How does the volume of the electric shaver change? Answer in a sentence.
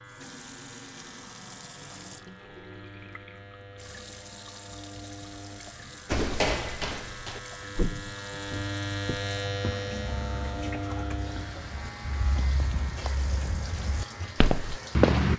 The volume of the electric shaver goes up, then down.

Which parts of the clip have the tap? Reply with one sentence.
The tap can be heard from 0.0 to 15.3 s.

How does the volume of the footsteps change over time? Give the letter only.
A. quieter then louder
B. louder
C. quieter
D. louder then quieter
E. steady
A.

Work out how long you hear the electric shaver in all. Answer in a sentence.
You can hear the electric shaver for 15 seconds altogether.